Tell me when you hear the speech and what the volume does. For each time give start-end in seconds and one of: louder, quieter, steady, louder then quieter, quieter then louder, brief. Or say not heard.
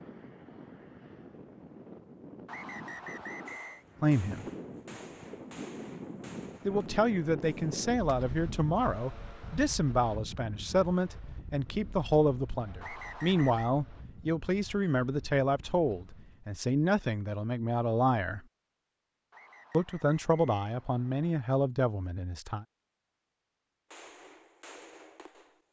4.0-4.5 brief
6.7-18.4 steady
19.7-22.6 brief.